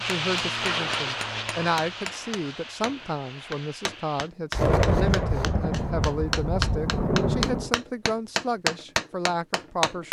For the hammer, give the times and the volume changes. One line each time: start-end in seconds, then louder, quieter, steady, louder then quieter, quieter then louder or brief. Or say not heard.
0.1-10.0 louder.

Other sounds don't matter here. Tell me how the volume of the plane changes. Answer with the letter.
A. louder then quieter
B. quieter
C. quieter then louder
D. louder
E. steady
B.